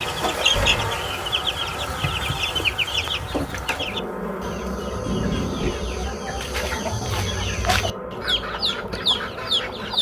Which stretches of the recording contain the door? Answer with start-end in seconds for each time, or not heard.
0.3-1.1, 5.0-5.8.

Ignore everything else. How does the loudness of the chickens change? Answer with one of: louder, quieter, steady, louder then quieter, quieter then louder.
quieter then louder.